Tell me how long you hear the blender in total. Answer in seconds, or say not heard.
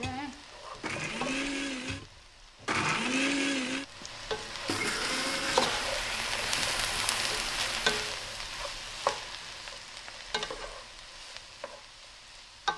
8 s.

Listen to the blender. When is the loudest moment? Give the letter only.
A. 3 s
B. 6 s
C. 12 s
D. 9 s
A.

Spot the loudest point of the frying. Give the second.
6 s.